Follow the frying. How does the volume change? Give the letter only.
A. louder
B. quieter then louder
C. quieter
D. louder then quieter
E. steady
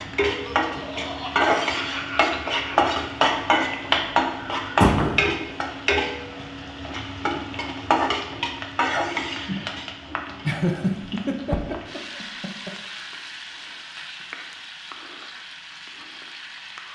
C.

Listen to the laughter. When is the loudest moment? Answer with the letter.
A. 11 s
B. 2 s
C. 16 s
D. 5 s
A.